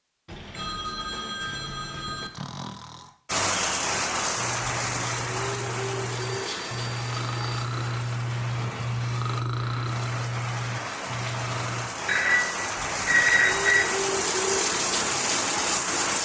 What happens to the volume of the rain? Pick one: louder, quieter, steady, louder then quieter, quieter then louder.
quieter then louder.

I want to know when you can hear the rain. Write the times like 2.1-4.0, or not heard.
3.2-16.1.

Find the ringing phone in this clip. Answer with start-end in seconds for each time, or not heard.
0.2-2.3, 6.2-7.7, 12.1-13.9.